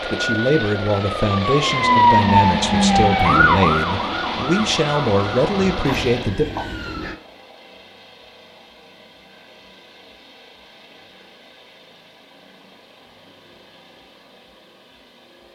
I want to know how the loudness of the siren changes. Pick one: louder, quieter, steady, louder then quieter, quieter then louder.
quieter.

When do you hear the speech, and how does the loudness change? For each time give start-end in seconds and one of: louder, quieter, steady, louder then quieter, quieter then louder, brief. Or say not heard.
0.0-6.5 steady.